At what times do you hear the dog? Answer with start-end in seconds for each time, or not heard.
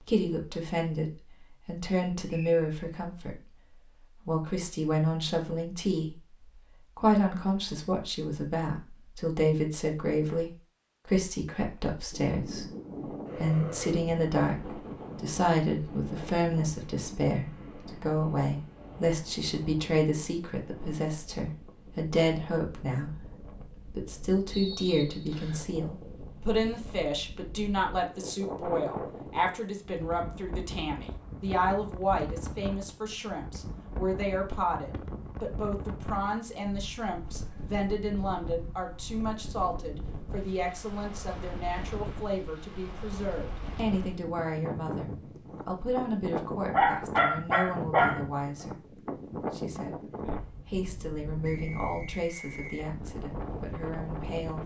46.7-48.2.